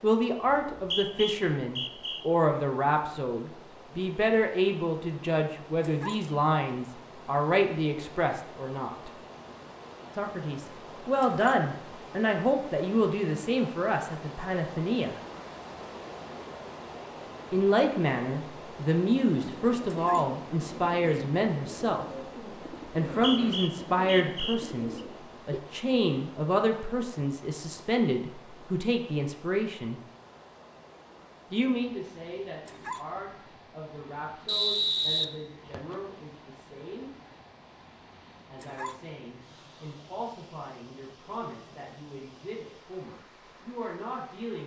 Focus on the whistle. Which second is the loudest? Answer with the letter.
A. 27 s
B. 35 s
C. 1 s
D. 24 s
B.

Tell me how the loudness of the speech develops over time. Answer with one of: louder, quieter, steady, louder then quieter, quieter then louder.
quieter.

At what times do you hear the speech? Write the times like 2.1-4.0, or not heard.
0.0-9.1, 10.2-15.2, 17.5-22.2, 22.9-30.0, 31.5-37.1, 38.5-44.6.